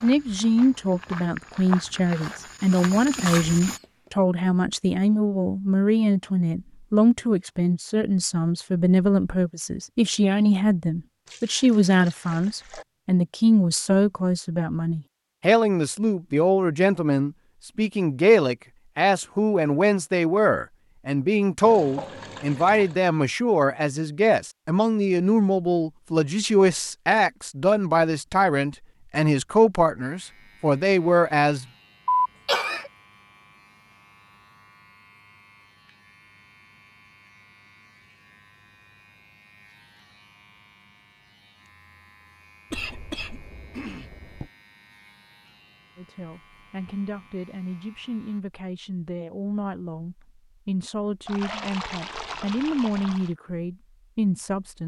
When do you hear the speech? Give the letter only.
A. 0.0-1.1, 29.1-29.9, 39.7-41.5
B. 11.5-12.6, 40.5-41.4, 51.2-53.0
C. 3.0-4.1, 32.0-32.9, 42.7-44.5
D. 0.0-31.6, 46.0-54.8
D.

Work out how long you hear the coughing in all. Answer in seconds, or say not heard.
4 s.